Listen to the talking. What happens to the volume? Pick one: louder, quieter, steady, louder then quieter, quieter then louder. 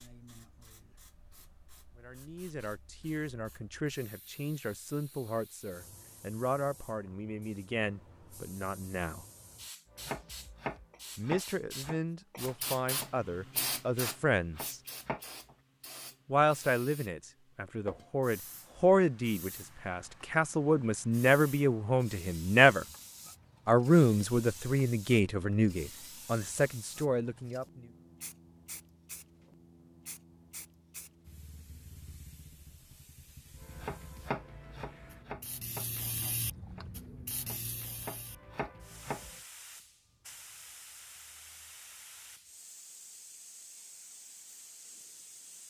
louder.